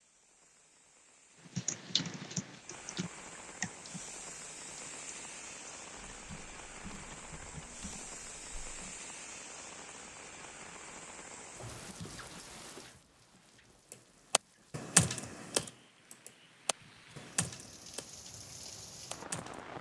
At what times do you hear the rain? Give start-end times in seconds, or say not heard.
0.0-19.7.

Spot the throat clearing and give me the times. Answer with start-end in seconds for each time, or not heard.
not heard.